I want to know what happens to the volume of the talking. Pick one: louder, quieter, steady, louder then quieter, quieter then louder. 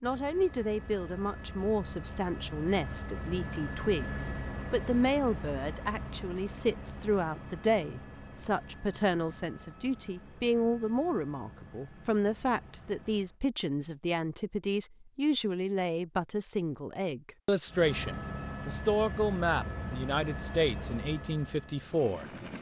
steady.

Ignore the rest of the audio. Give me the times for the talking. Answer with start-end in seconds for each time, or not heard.
0.0-22.2.